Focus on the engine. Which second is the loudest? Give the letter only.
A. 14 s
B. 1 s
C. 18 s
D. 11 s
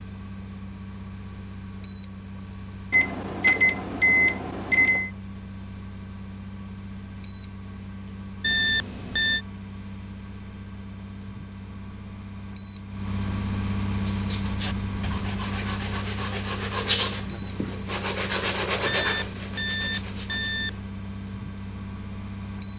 A.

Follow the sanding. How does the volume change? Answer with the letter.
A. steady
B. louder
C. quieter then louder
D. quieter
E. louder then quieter
E.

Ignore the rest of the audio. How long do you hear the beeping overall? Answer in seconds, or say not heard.
5 s.